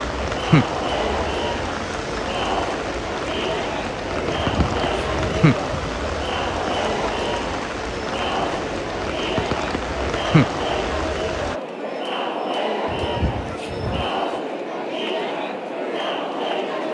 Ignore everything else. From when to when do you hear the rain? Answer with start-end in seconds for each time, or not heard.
0.0-11.6.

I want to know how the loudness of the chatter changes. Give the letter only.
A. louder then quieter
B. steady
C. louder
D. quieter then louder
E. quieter
B.